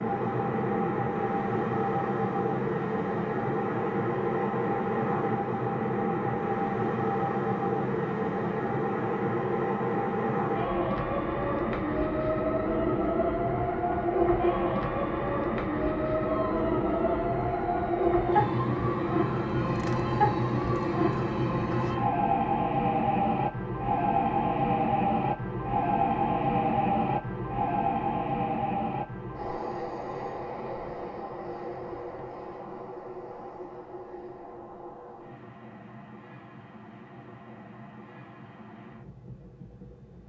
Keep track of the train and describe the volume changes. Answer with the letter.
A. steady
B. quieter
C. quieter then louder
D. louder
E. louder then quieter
B.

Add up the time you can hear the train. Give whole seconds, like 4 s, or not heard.
40 s.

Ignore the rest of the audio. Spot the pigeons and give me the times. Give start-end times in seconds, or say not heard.
not heard.